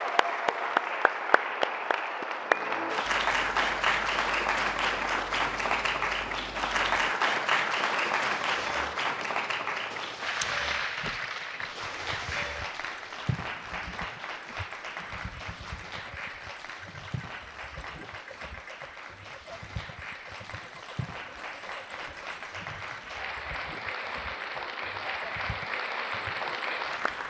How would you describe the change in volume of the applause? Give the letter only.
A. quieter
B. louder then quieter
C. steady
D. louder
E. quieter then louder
E.